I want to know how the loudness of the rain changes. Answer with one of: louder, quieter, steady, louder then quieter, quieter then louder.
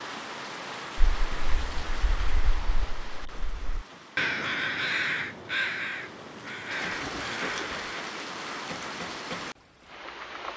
quieter then louder.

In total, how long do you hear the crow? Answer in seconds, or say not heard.
7 s.